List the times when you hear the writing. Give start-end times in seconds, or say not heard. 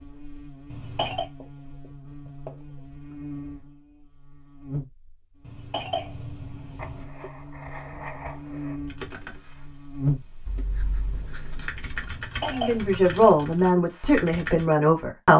1.4-3.1, 6.8-8.8, 10.4-12.1.